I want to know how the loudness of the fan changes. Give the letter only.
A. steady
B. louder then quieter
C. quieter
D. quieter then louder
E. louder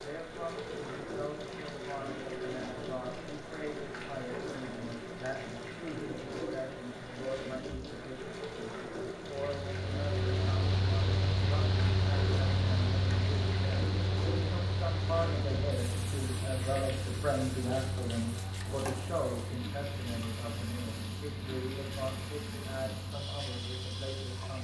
C.